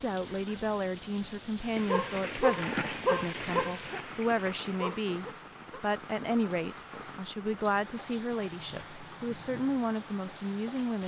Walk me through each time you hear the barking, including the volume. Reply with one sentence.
You can hear the barking from 1.8 to 5.8 s, getting quieter then louder.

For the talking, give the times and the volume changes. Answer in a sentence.
You can hear the talking from 0.0 to 11.0 s, at a steady volume.